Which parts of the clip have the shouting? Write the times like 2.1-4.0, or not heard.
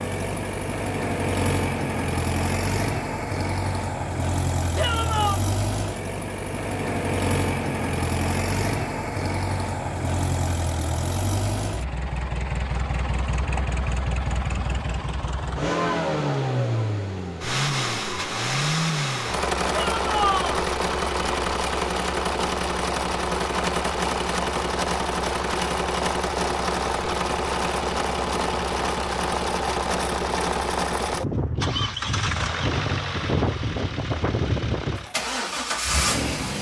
4.8-5.4, 19.7-20.6.